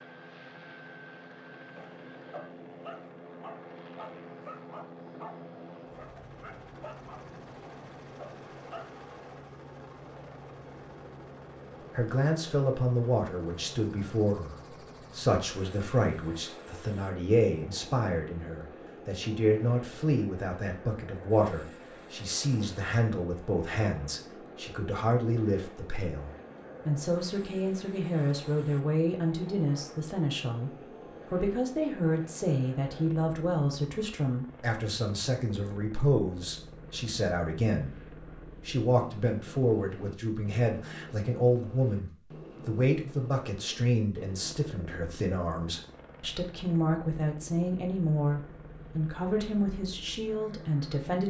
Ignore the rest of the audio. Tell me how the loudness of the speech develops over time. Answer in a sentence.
The volume of the speech stays about the same.